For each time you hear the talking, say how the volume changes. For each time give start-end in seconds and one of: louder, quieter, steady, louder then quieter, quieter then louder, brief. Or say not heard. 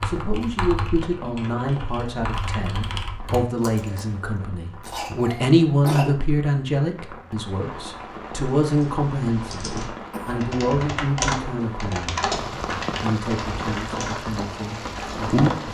0.0-12.3 louder then quieter
13.0-15.6 brief.